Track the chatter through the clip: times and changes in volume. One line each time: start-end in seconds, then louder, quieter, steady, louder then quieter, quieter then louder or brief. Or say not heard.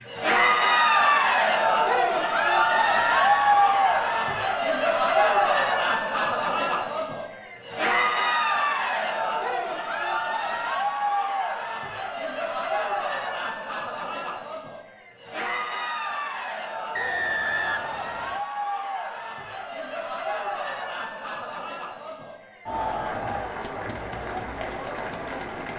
0.1-25.7 quieter.